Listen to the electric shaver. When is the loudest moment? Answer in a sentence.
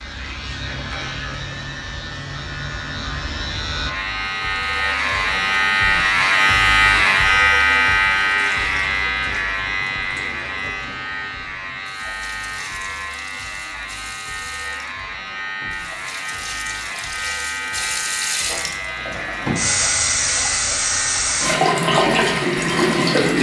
The volume of the electric shaver peaks at 7 seconds.